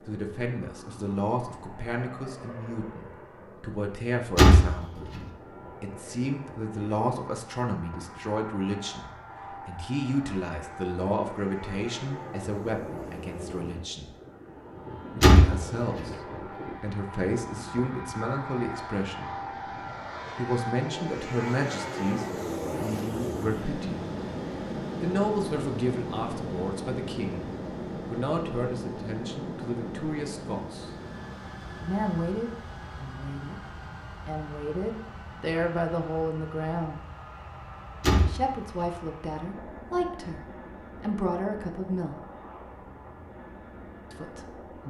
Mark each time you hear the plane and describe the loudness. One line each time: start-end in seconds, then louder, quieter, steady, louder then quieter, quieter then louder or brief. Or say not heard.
0.0-44.8 louder then quieter.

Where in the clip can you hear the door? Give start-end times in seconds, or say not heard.
4.3-5.2, 15.2-16.1, 38.0-38.9.